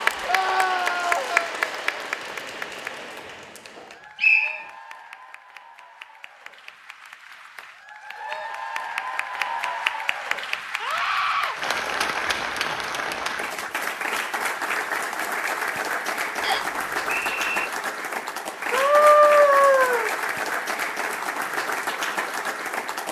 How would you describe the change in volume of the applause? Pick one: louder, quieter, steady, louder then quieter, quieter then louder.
quieter then louder.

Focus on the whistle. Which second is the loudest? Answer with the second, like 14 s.
4 s.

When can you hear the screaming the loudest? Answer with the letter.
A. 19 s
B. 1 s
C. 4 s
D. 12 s
A.